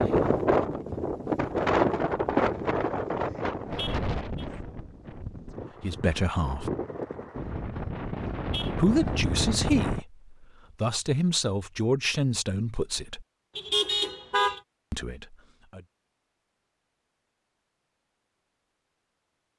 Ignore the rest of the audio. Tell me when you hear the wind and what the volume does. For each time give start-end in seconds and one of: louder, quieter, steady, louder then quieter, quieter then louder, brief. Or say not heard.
0.0-10.0 quieter then louder.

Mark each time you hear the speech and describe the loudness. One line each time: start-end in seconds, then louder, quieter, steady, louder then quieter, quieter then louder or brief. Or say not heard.
5.8-6.7 brief
8.8-13.2 quieter then louder
14.9-15.8 brief.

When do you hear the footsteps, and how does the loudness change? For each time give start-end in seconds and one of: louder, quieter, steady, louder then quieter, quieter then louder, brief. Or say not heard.
not heard.